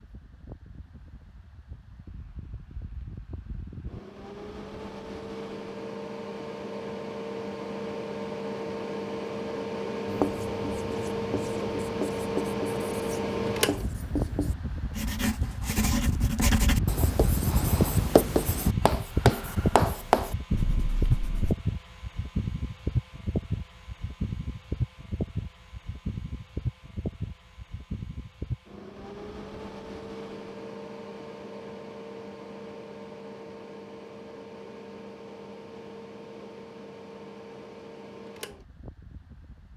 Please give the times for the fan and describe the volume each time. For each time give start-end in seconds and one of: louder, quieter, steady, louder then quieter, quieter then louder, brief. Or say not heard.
0.0-39.7 louder then quieter.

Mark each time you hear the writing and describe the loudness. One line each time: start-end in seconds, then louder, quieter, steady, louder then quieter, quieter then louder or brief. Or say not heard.
10.1-21.6 louder.